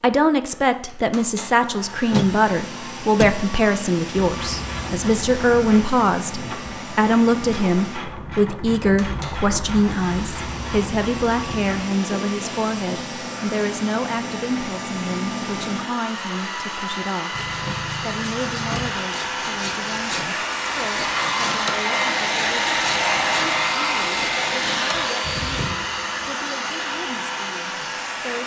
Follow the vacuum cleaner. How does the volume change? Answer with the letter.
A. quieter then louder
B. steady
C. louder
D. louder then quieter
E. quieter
C.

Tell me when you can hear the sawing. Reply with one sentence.
The sawing can be heard from 17.3 to 26.2 s.